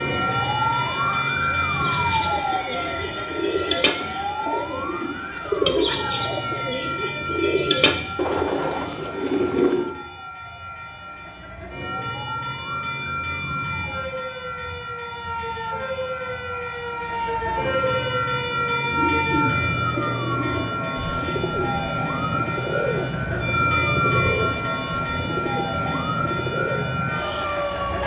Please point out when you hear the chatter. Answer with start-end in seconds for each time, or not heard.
not heard.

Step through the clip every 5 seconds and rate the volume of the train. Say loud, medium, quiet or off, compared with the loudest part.
loud, medium, medium, loud, loud, loud.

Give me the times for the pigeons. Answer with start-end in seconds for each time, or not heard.
1.8-9.9, 18.9-26.9.